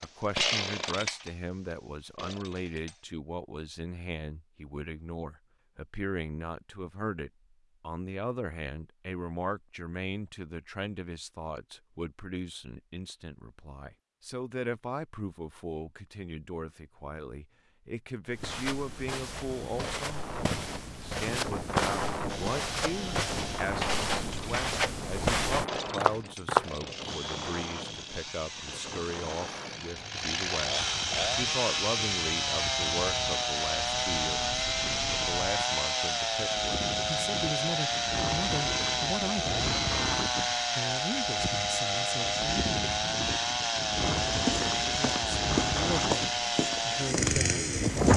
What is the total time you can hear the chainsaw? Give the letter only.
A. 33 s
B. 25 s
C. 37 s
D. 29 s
D.